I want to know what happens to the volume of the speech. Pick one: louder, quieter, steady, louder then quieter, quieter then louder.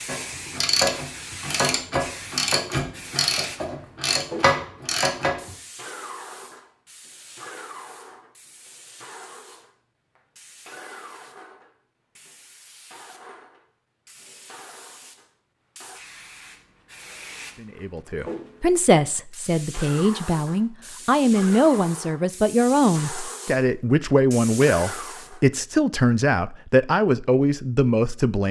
steady.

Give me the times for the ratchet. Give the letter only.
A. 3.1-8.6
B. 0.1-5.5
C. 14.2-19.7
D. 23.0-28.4
B.